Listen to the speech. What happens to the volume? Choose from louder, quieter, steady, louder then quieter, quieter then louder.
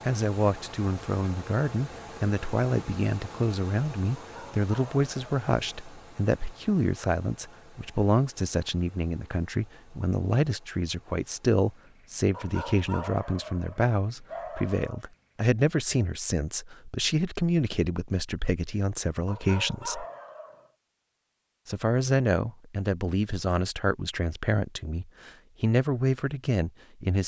steady.